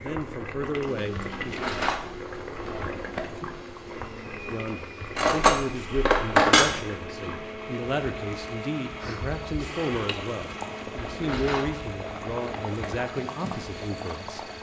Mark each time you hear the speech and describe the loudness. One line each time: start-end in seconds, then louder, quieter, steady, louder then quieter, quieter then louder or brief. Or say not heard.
0.0-1.6 brief
4.5-14.4 steady.